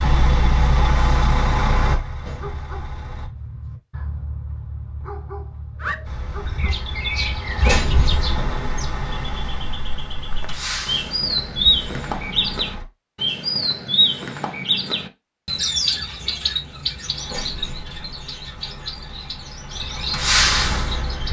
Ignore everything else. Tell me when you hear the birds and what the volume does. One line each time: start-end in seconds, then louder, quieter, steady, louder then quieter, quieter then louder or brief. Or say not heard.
5.8-21.2 louder then quieter.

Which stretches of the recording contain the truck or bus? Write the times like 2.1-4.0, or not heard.
0.0-3.3, 6.0-12.8, 17.1-21.2.